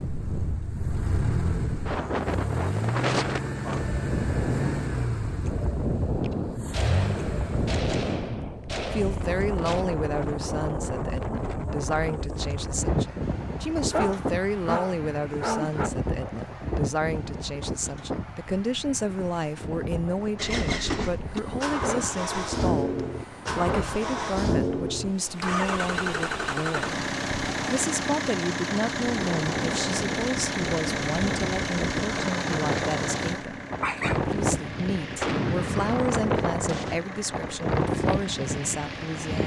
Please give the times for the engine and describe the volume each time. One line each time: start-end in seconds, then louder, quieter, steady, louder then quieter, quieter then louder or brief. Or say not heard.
0.0-7.8 steady
20.4-39.4 quieter.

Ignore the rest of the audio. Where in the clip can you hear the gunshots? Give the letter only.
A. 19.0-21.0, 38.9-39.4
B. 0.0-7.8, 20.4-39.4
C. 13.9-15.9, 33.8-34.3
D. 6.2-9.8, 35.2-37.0
D.